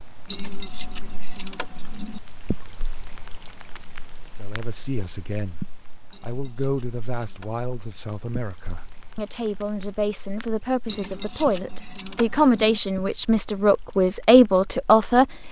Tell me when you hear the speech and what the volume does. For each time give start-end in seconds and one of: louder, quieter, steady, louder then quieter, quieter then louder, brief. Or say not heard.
4.3-5.6 brief
6.2-15.3 louder.